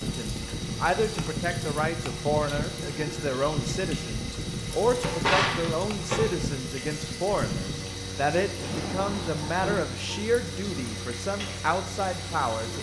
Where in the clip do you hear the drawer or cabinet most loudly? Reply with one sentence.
The volume of the drawer or cabinet peaks at 5 seconds.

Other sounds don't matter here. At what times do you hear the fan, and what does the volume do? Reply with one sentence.
The fan can be heard from 0.0 to 12.7 s, getting quieter.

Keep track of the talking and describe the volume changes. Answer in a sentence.
The loudness of the talking stays about the same.